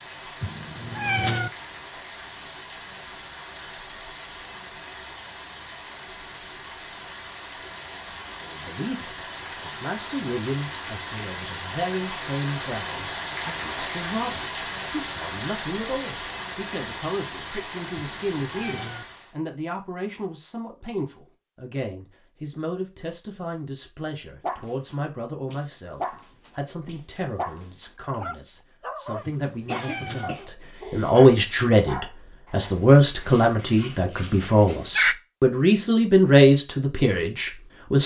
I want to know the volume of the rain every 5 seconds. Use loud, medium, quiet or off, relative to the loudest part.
medium, medium, loud, loud, off, off, off, off.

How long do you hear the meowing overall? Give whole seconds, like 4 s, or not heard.
3 s.